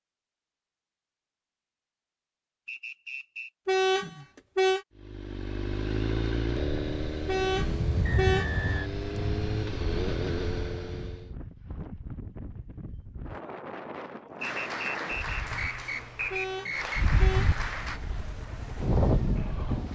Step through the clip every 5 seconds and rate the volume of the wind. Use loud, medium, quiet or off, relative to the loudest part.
off, loud, medium, loud.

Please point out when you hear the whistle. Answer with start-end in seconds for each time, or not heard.
2.6-3.5, 8.0-8.9, 14.4-17.0.